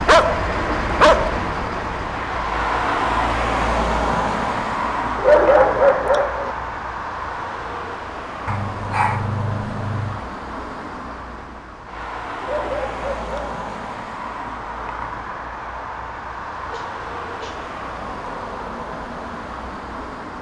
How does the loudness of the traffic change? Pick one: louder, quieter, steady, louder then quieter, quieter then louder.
quieter.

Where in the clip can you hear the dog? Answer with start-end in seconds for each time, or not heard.
0.1-1.4, 5.2-6.5, 8.4-10.2, 12.4-13.6, 16.7-17.6.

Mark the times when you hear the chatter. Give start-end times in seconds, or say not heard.
not heard.